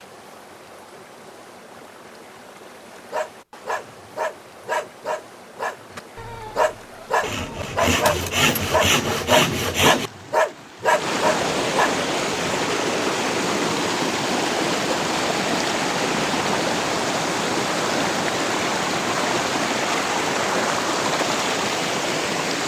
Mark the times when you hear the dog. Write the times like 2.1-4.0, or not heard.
3.1-11.9.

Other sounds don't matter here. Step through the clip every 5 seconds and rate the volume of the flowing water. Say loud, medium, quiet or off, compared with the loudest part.
quiet, quiet, loud, loud, loud.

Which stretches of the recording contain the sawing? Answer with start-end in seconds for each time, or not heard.
7.2-10.1.